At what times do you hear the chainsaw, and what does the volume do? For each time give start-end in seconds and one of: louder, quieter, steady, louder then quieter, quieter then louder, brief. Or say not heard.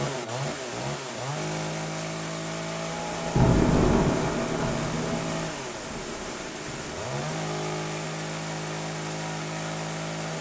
0.0-10.3 steady.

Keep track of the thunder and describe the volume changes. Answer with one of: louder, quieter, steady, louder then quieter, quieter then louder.
quieter.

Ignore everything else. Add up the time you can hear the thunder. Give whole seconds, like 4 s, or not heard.
4 s.